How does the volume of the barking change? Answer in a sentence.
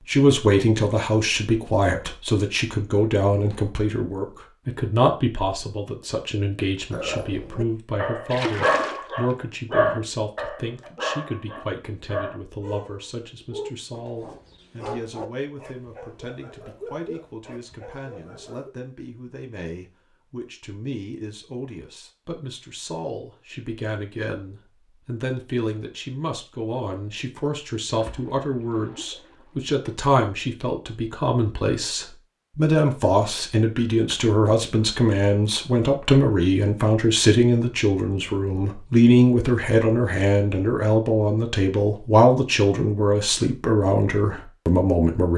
The loudness of the barking goes down.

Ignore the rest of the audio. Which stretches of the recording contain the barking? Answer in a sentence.
You can hear the barking from 6.9 to 18.7 s.